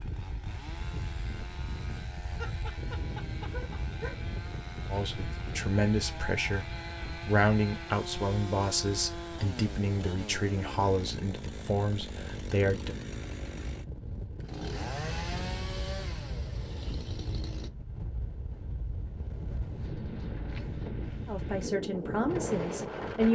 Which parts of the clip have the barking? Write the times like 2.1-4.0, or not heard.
2.2-4.2.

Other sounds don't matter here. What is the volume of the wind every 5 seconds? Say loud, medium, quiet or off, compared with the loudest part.
medium, medium, medium, medium, loud.